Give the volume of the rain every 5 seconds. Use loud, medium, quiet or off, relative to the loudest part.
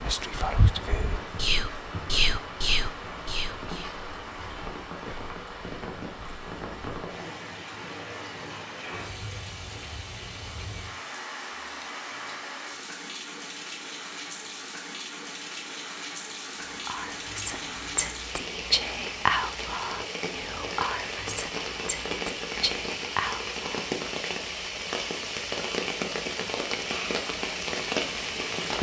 medium, medium, medium, medium, loud, loud.